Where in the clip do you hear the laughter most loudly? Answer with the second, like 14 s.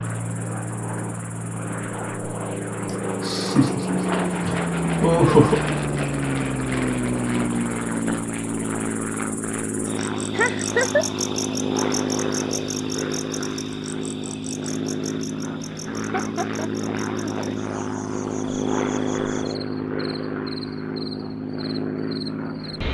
5 s.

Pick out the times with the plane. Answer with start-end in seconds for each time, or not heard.
0.0-22.8.